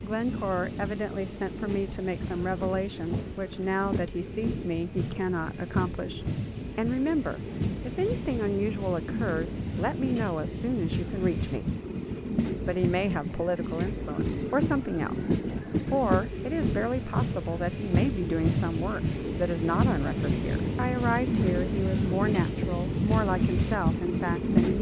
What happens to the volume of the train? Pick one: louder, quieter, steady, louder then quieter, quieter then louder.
louder.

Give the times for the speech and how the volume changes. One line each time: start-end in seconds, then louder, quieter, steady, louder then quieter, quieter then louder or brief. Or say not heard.
0.0-11.8 steady
12.7-24.7 steady.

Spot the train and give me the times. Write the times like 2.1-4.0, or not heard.
0.0-24.7.